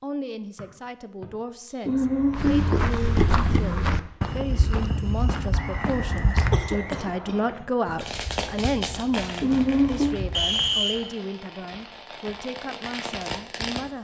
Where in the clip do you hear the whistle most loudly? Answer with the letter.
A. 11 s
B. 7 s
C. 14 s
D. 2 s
A.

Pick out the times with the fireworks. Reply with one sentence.
You can hear the fireworks from 8.0 to 13.9 s.